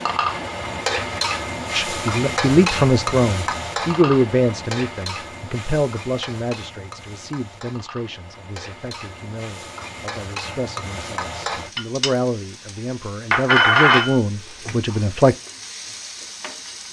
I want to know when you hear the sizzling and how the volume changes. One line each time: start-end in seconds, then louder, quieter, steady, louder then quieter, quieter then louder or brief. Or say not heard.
0.0-16.8 quieter then louder.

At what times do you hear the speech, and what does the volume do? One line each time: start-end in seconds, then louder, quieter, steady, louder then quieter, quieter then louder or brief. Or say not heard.
1.7-15.3 quieter then louder.